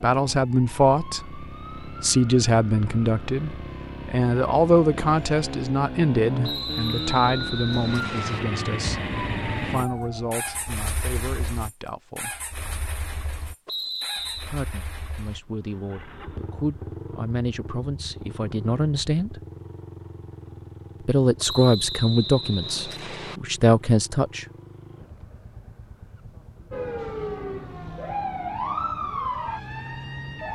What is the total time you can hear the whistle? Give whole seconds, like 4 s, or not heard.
5 s.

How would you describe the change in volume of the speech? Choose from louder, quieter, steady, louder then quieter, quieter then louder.
quieter then louder.